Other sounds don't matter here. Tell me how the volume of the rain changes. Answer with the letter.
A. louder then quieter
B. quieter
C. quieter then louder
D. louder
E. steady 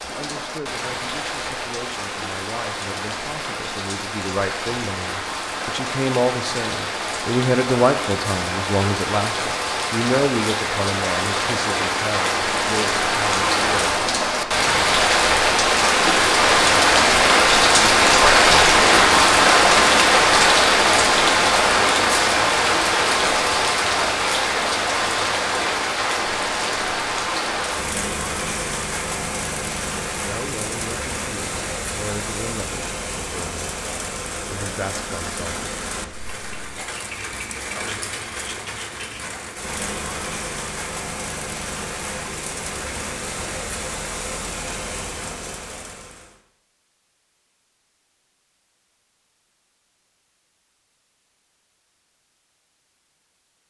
A.